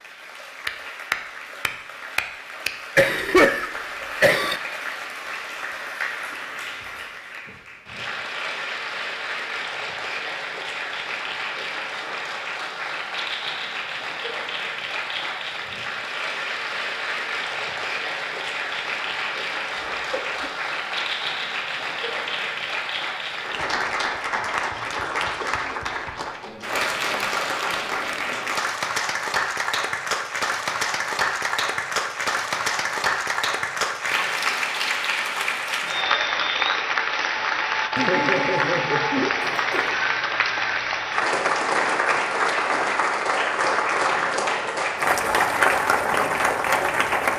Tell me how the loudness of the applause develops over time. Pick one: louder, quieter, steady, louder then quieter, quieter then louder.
louder.